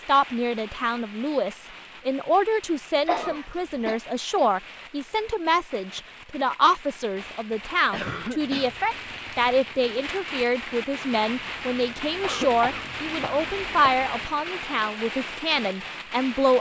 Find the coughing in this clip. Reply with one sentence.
The coughing can be heard from 3.0 to 4.0 s, from 7.9 to 8.8 s and from 12.2 to 13.9 s.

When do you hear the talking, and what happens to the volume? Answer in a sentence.
The talking can be heard from 0.1 to 16.5 s, at a steady volume.